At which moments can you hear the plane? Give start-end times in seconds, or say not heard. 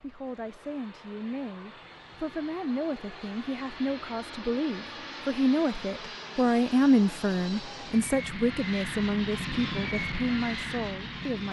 0.0-11.4.